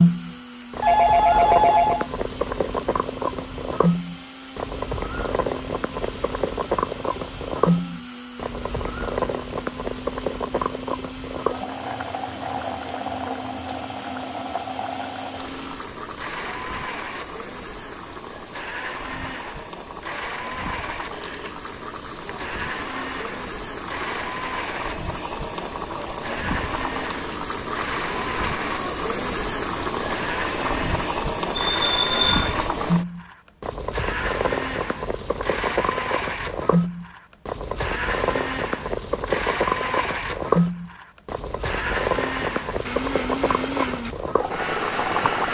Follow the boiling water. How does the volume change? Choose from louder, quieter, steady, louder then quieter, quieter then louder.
quieter then louder.